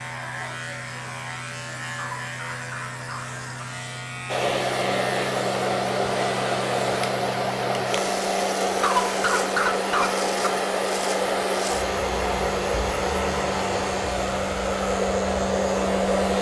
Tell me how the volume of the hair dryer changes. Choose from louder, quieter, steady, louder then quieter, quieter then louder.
steady.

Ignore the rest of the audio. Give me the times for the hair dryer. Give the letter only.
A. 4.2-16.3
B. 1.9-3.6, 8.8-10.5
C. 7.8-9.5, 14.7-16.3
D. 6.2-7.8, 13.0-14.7
A.